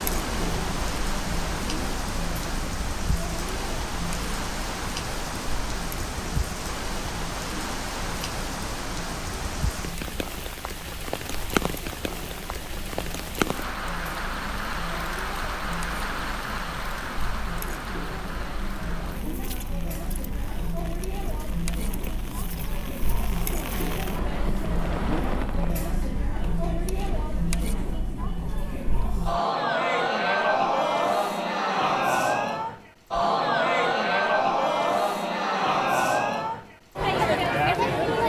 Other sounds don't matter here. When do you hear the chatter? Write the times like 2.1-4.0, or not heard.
0.0-38.2.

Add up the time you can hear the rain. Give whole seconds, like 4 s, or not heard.
26 s.